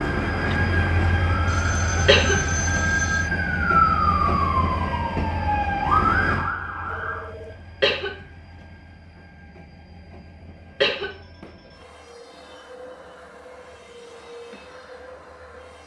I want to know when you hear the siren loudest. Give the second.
4 s.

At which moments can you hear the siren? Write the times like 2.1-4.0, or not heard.
0.0-7.3.